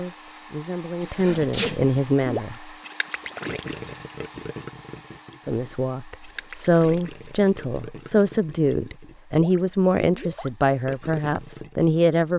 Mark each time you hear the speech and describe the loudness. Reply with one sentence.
The speech can be heard briefly from 0.0 to 2.7 s; and from 5.5 to 12.3 s, at a steady volume.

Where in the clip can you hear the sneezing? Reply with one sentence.
You can hear the sneezing from 1.0 to 1.8 s.